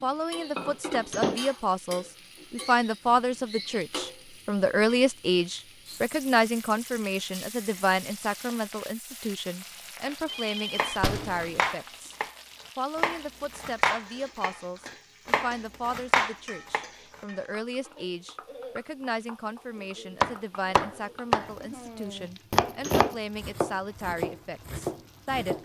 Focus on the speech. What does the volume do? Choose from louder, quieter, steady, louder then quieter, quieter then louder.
quieter.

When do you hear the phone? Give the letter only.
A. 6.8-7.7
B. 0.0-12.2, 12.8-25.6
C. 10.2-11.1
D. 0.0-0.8
C.